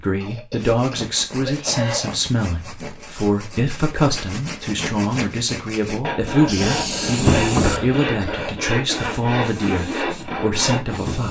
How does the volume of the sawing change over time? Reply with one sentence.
The volume of the sawing goes up.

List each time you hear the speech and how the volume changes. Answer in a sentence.
The speech can be heard from 0.0 to 11.2 s, at a steady volume.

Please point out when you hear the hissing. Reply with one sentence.
You can hear the hissing from 6.5 to 11.2 s.